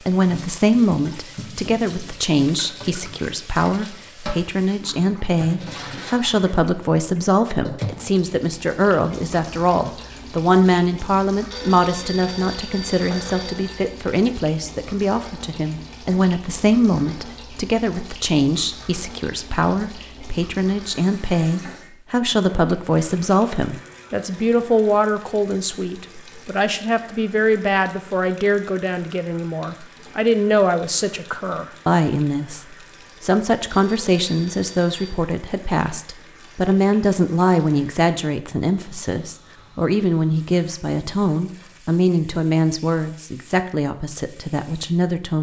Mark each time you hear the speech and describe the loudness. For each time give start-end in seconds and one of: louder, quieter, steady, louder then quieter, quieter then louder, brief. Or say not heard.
0.1-45.3 steady.